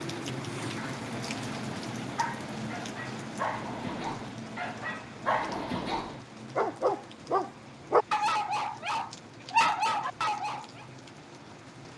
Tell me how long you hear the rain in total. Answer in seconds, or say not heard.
12 s.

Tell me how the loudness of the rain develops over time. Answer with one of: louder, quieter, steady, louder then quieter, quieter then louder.
quieter.